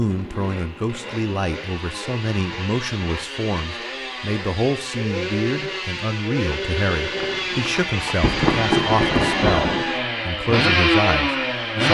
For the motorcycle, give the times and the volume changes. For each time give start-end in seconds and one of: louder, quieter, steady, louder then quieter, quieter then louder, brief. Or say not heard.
0.0-11.8 louder.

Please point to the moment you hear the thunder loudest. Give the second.
9 s.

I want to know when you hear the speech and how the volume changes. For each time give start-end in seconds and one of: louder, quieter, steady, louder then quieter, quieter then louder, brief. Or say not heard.
0.0-11.8 steady.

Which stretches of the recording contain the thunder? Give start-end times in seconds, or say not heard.
7.2-9.8.